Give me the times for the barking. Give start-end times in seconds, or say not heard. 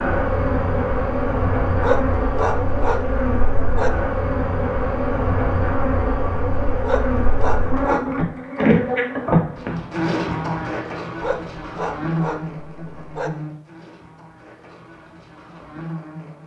1.8-3.9, 6.8-8.2, 11.2-13.3.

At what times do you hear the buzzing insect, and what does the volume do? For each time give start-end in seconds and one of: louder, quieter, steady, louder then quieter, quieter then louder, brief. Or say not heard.
0.0-16.4 quieter.